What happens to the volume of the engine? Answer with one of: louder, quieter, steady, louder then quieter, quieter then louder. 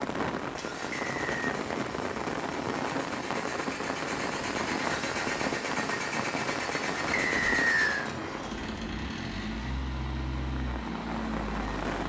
louder.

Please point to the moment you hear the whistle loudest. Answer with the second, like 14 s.
8 s.